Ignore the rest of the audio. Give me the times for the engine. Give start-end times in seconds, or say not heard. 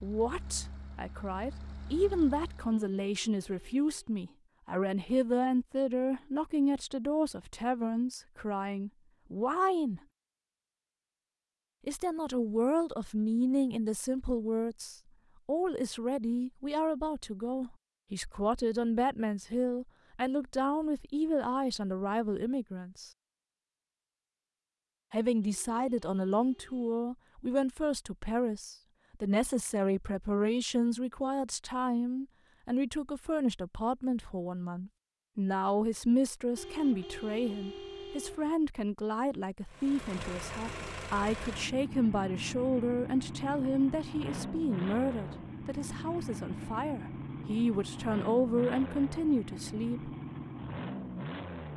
0.0-2.8, 39.6-51.7.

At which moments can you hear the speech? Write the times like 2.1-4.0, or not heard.
0.0-10.0, 11.8-23.1, 25.1-50.1.